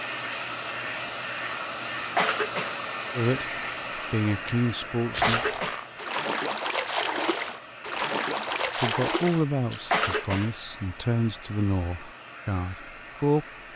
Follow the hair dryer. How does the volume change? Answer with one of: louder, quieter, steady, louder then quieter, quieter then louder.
quieter.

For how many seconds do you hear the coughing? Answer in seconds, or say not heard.
2 s.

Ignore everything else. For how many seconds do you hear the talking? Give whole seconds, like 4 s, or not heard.
7 s.